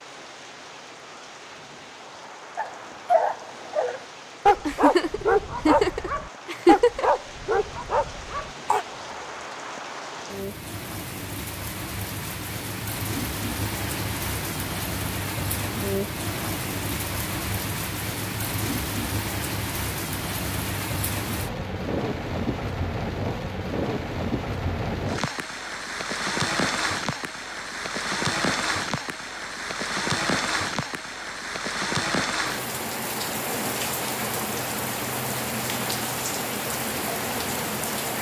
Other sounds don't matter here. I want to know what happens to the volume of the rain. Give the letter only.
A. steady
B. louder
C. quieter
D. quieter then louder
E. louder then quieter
B.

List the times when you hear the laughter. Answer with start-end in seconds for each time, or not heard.
4.7-7.2.